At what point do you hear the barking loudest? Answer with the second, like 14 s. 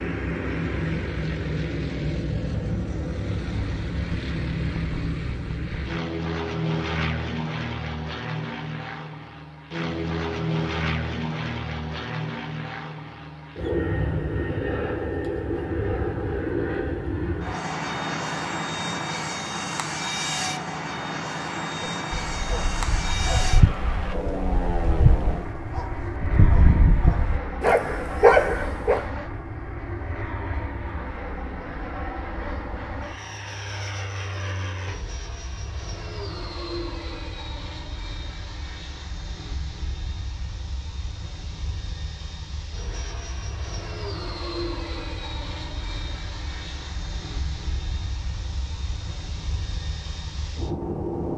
28 s.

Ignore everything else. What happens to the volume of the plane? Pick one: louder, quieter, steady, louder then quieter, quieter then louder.
quieter.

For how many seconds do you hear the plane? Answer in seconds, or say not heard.
51 s.